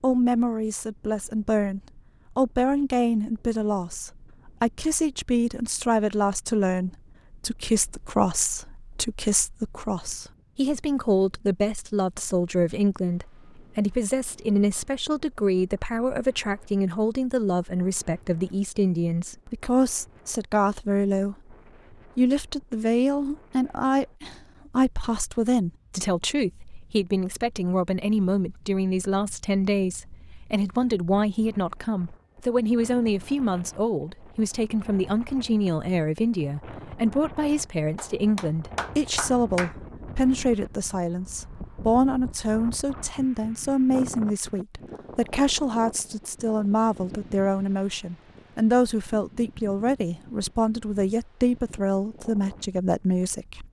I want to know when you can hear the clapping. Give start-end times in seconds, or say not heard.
38.0-39.8.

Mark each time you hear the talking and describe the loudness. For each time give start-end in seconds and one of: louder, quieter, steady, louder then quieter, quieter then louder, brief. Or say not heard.
0.0-21.6 steady
22.1-53.6 steady.